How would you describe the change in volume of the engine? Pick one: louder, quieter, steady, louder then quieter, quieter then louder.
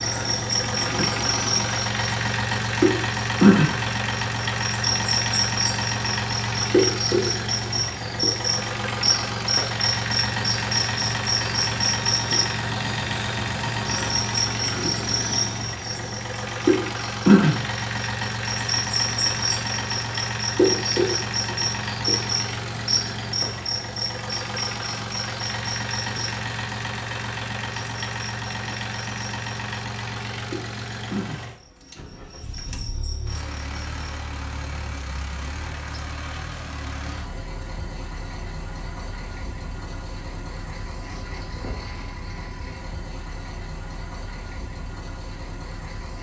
quieter.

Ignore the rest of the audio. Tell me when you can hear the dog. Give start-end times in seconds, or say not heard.
not heard.